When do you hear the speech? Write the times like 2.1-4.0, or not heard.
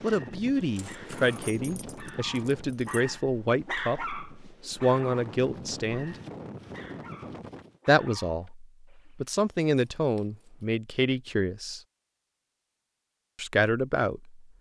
0.0-6.2, 7.8-11.8, 13.3-14.4.